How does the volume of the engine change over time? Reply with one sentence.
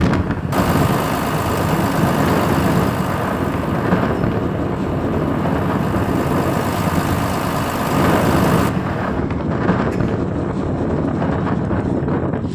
The loudness of the engine goes down, then up.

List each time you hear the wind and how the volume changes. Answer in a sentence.
The wind can be heard from 0.0 to 12.5 s, at a steady volume.